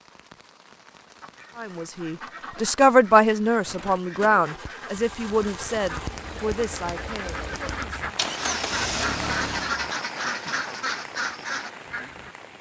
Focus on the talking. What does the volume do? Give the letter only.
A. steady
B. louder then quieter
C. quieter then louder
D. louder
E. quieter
E.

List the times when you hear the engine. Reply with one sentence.
The engine can be heard from 3.6 to 9.8 s.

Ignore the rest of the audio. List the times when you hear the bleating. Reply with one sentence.
You can't hear the bleating here.